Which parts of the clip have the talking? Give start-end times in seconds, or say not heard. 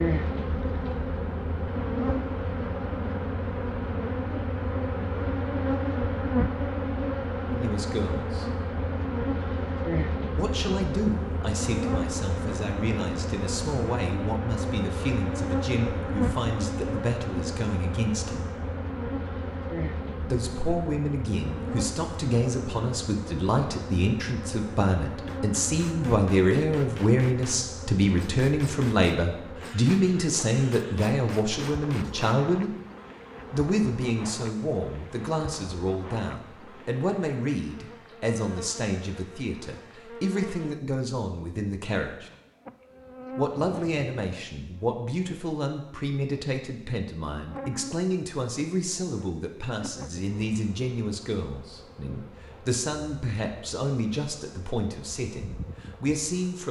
7.5-8.5, 10.3-18.4, 20.2-32.7, 33.5-42.3, 43.4-56.6.